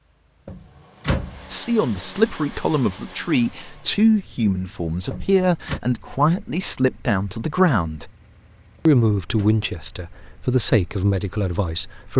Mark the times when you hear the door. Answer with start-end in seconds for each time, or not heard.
0.5-1.4, 5.1-5.8, 8.8-9.7.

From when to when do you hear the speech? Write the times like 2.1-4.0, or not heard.
1.5-8.1, 8.8-12.1.